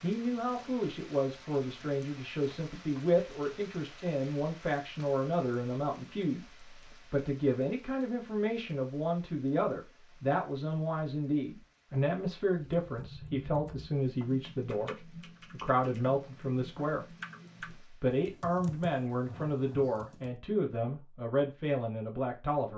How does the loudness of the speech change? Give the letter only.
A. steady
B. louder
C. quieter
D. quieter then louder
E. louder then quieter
A.